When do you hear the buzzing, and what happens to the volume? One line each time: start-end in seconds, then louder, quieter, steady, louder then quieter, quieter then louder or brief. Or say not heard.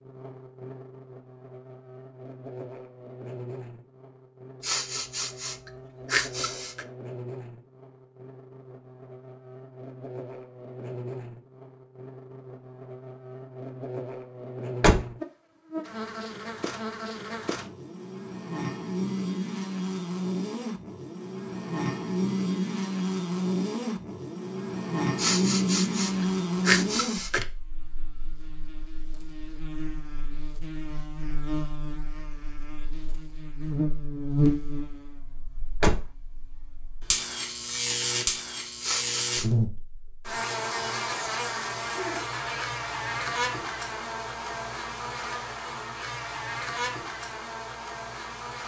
0.0-48.6 louder.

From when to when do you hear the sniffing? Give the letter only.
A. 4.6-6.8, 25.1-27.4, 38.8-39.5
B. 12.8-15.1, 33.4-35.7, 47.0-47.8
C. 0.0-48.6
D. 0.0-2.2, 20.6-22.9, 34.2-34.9
A.